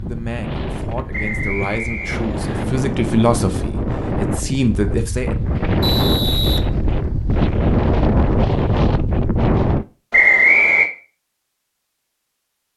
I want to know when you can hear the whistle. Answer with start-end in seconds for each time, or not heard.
1.1-2.6, 5.8-6.6, 10.1-10.9.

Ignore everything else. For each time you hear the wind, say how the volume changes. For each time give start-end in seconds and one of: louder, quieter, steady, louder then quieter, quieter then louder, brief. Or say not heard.
0.0-9.8 louder.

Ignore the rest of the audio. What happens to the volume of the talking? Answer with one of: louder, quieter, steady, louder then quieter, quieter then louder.
louder.